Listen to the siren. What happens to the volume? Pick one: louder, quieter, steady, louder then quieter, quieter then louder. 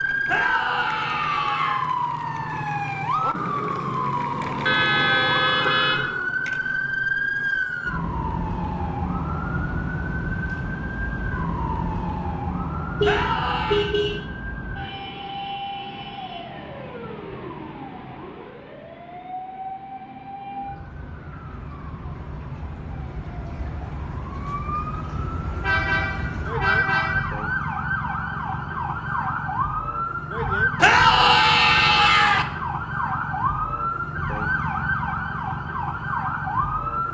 quieter then louder.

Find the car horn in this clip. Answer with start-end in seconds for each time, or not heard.
4.7-6.1, 13.0-14.2, 25.6-27.3.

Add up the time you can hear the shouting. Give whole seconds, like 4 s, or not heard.
4 s.